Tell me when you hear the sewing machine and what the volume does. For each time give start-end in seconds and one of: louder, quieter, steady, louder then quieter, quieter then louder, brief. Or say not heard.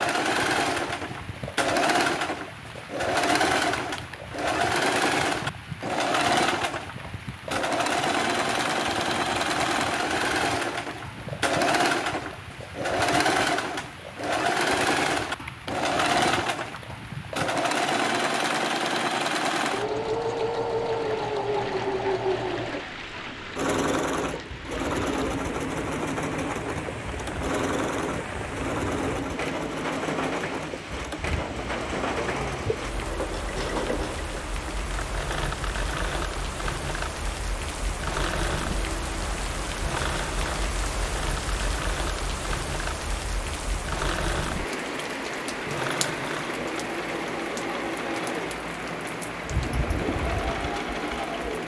0.0-51.6 quieter.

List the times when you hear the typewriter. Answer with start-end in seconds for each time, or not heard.
not heard.